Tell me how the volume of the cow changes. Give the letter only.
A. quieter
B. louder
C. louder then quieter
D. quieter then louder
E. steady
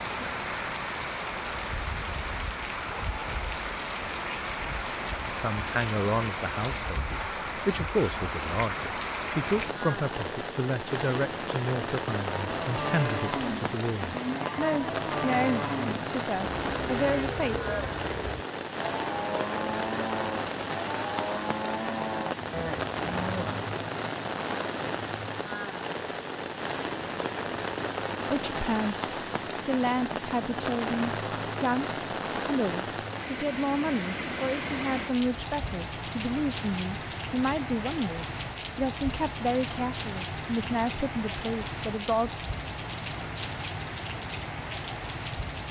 E.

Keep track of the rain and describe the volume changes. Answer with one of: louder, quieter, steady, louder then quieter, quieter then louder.
steady.